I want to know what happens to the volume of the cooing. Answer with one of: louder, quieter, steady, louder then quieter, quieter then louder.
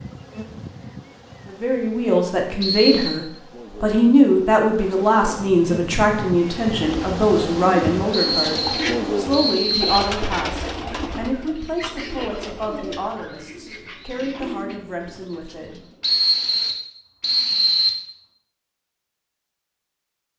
quieter.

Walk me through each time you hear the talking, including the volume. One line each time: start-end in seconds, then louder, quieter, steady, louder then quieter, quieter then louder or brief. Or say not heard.
1.4-15.8 quieter.